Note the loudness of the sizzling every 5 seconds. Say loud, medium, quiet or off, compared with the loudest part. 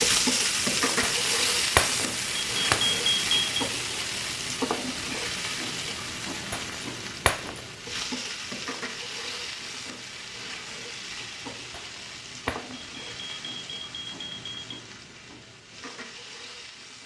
loud, medium, quiet, quiet.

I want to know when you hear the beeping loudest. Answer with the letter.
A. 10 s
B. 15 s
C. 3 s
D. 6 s
C.